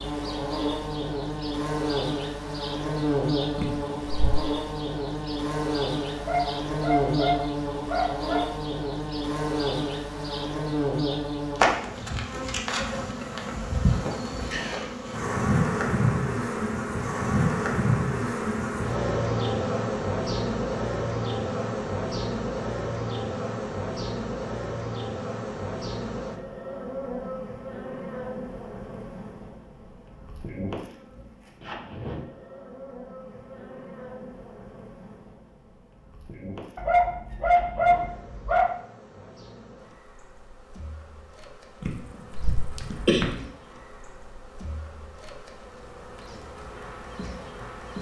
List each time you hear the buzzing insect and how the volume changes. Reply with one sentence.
You can hear the buzzing insect from 0.0 to 47.9 s, getting quieter.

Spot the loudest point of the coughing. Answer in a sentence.
The loudest moment of the coughing is at 43 seconds.